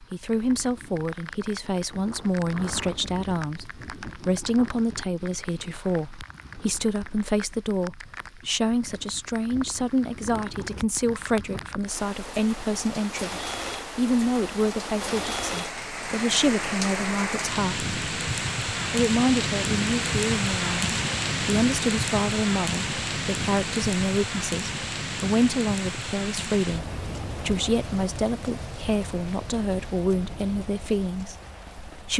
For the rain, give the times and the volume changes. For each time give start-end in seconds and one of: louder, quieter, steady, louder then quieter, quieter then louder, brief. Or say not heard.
0.0-32.1 louder then quieter.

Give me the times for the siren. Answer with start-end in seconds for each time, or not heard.
not heard.